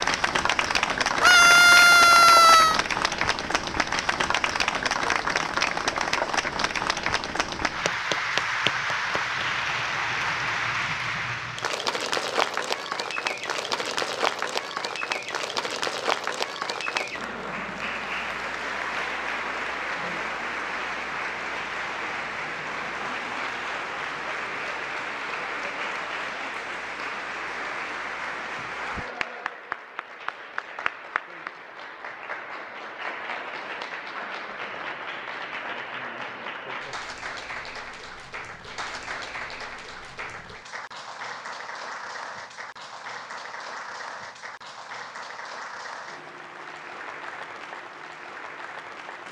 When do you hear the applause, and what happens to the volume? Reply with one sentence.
The applause can be heard from 0.0 to 49.2 s, getting quieter.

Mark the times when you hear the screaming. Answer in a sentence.
The screaming can be heard from 1.2 to 2.8 s.